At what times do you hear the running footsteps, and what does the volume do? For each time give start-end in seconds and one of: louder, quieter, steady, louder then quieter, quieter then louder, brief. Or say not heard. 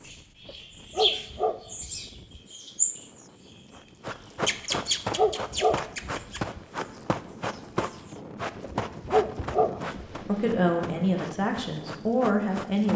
3.8-12.9 quieter.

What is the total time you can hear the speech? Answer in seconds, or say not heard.
3 s.